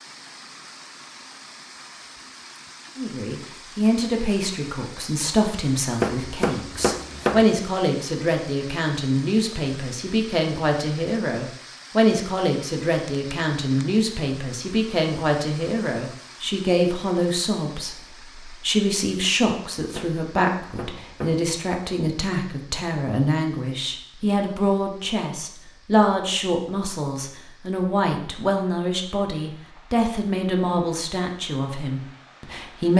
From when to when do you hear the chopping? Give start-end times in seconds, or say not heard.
6.0-7.5, 19.9-21.4.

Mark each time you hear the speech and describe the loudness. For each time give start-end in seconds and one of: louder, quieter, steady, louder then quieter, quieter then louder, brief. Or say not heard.
3.0-32.9 steady.